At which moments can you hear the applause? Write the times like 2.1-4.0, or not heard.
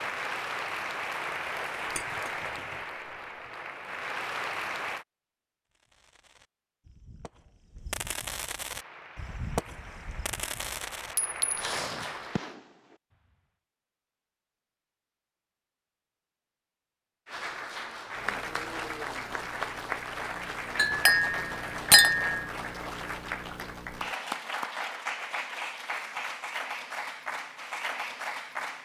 0.0-5.0, 8.8-12.6, 17.2-28.8.